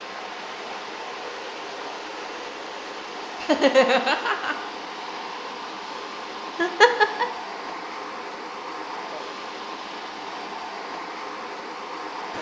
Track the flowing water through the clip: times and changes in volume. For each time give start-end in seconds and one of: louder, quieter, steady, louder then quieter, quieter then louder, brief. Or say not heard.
0.0-12.3 steady.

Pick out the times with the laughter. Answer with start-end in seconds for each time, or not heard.
3.4-4.5, 6.5-7.2.